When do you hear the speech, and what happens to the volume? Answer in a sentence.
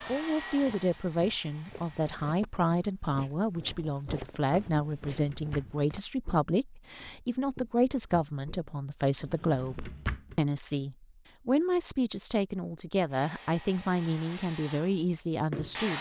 The speech can be heard from 0.1 to 15.9 s, at a steady volume.